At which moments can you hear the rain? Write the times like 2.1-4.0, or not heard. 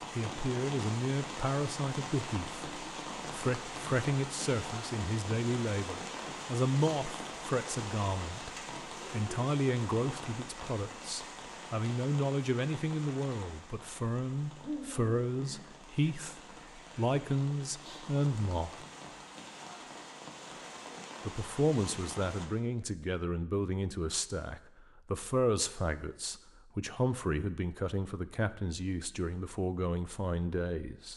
0.0-22.4.